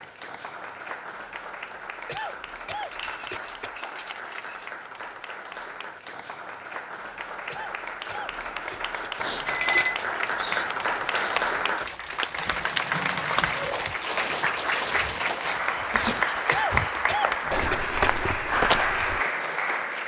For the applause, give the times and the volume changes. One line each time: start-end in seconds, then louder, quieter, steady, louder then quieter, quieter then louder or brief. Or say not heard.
0.0-20.0 louder.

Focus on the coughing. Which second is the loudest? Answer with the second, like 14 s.
17 s.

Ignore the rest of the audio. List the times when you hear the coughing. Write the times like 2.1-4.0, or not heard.
2.0-3.7, 7.5-8.9, 16.4-17.9.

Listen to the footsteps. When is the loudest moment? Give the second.
19 s.